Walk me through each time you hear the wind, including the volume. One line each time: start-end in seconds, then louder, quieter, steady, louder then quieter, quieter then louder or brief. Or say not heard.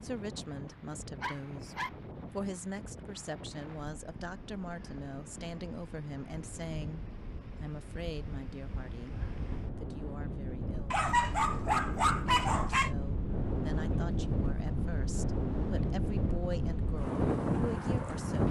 0.0-18.4 louder.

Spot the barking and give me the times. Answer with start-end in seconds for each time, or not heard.
1.2-1.9, 10.9-12.9.